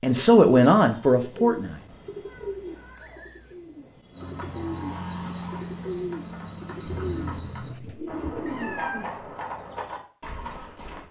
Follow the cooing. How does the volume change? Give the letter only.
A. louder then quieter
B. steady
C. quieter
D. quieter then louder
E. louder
D.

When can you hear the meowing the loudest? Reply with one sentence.
The loudest moment of the meowing is at 9 seconds.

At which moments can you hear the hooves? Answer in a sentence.
You can hear the hooves from 4.1 to 11.0 s.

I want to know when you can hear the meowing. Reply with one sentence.
The meowing can be heard from 2.2 to 3.5 s and from 7.1 to 9.2 s.